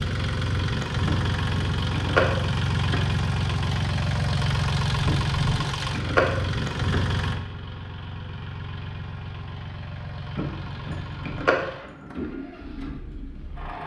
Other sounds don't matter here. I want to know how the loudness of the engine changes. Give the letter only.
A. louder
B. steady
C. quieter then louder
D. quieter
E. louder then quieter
D.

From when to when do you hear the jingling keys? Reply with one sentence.
The jingling keys can be heard from 1.1 to 3.0 s, from 5.0 to 7.0 s and from 10.3 to 12.2 s.